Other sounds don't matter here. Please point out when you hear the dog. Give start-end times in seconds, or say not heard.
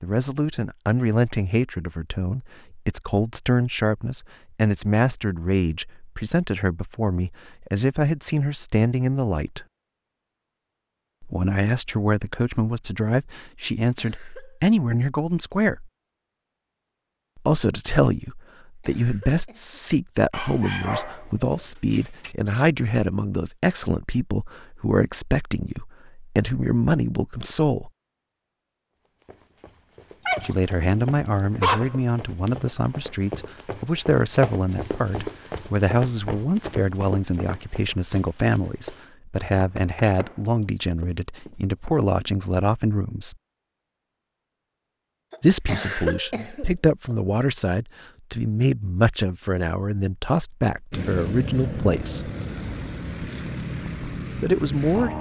20.3-22.3, 30.2-31.9.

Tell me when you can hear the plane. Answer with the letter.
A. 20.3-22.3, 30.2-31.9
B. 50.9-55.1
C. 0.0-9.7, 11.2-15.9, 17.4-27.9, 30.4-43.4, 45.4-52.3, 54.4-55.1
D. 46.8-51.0
B.